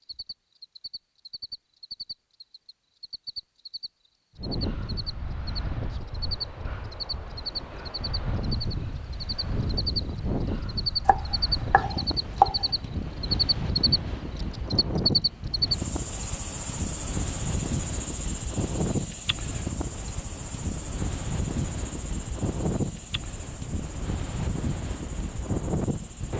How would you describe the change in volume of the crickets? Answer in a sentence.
The loudness of the crickets goes up, then down.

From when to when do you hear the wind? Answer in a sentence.
You can hear the wind from 4.3 to 26.3 s.